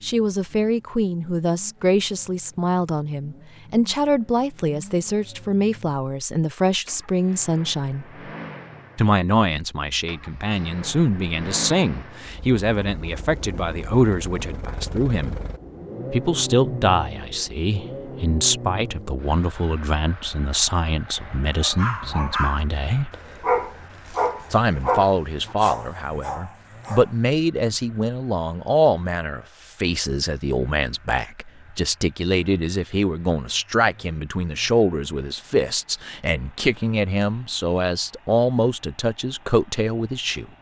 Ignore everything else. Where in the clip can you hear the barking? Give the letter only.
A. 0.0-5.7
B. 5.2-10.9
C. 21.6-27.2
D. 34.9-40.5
C.